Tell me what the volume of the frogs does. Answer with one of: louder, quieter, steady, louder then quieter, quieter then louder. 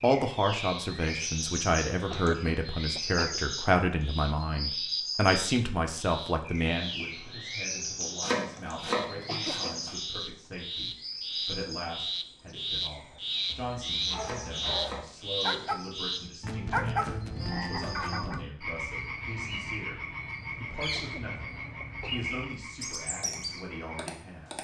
louder then quieter.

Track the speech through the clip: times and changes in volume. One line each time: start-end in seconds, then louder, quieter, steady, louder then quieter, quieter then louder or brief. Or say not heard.
0.0-24.5 quieter.